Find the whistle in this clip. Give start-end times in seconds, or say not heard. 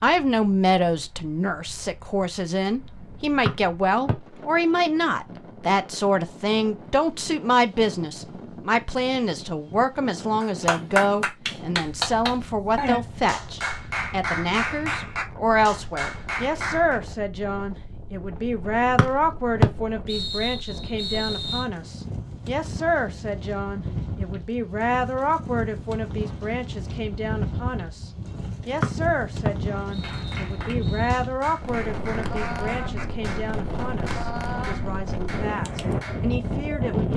3.5-4.2, 18.9-21.6, 28.8-31.2.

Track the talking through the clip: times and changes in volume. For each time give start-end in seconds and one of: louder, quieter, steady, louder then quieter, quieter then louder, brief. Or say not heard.
0.0-37.1 quieter.